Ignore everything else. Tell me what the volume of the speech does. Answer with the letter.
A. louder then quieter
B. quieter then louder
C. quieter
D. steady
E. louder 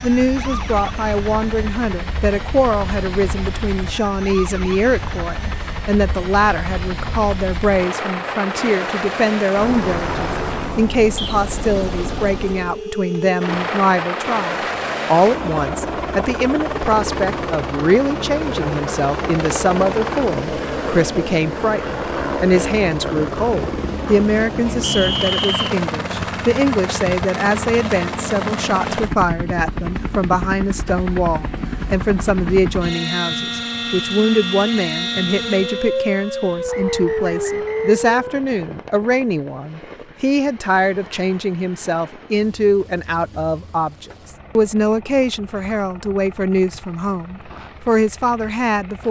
D.